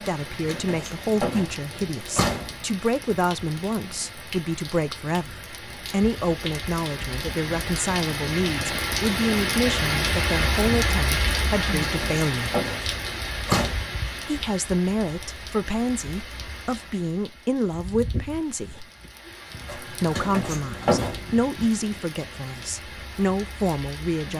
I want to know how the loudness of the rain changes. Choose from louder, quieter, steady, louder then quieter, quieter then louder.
louder then quieter.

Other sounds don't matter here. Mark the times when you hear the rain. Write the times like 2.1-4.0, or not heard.
0.0-24.3.